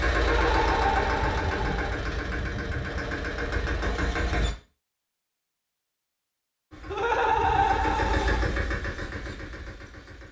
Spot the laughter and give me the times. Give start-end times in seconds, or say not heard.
0.1-1.9, 6.9-8.5.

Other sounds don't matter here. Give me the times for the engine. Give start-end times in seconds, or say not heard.
0.0-4.5, 6.7-10.2.